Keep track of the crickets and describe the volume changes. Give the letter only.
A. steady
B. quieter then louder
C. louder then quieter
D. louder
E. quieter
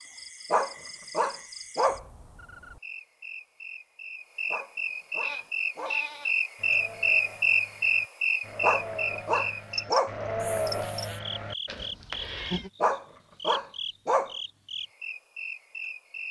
C.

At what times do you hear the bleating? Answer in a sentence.
The bleating can be heard from 5.2 to 12.7 s.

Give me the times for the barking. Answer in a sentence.
The barking can be heard from 0.5 to 2.0 s, from 4.5 to 6.0 s, from 8.6 to 10.2 s and from 12.8 to 14.3 s.